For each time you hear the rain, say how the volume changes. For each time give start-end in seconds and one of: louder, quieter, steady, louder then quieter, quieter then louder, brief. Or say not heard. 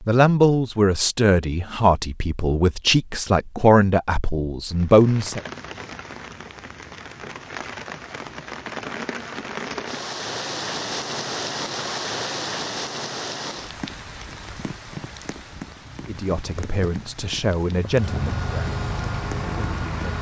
4.7-20.1 louder then quieter.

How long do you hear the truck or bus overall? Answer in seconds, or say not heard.
2 s.